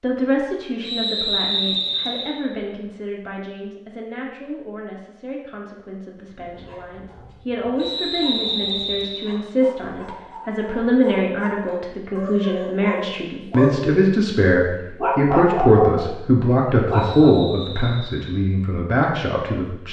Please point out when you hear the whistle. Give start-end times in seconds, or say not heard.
0.8-2.4, 7.8-9.3, 16.9-18.4.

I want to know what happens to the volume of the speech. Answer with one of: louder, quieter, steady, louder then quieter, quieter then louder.
louder.